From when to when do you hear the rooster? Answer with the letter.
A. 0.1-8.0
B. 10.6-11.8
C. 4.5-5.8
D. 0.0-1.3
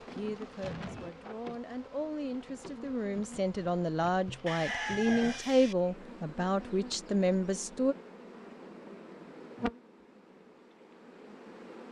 C.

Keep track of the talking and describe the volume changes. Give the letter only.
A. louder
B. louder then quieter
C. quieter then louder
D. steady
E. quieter
A.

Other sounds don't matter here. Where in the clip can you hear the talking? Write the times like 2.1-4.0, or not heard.
0.1-8.0.